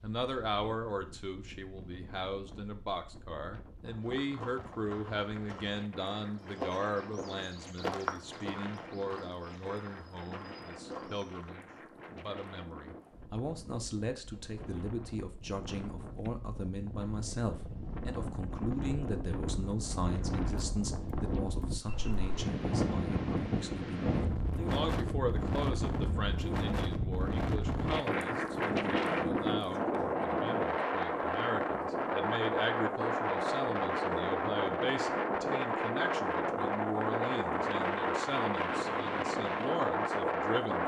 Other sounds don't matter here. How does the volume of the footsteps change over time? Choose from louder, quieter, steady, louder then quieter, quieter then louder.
louder then quieter.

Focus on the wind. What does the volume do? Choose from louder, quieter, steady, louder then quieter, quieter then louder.
louder.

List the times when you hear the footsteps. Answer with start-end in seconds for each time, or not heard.
4.0-11.5.